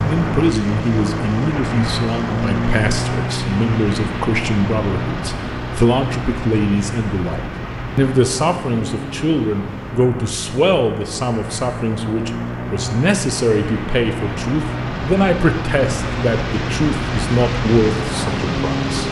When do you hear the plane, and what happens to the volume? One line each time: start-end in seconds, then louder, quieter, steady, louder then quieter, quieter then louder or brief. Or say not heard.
0.0-19.0 quieter then louder.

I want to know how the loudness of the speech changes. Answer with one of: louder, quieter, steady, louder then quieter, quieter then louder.
steady.